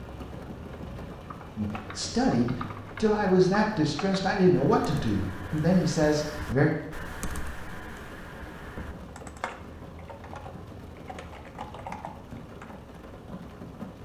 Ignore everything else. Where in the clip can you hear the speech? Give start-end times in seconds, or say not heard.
1.6-6.7.